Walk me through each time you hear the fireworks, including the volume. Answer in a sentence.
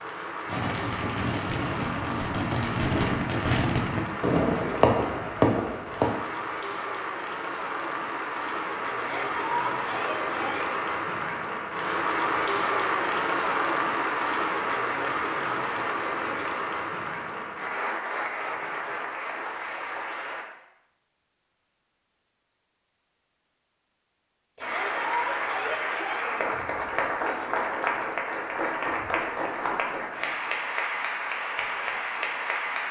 You can hear the fireworks from 0.5 to 6.2 s, getting louder.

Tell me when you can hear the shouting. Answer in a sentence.
You can hear the shouting from 8.9 to 10.7 s and from 24.6 to 26.4 s.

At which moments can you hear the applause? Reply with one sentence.
You can hear the applause from 0.0 to 20.4 s and from 24.6 to 32.8 s.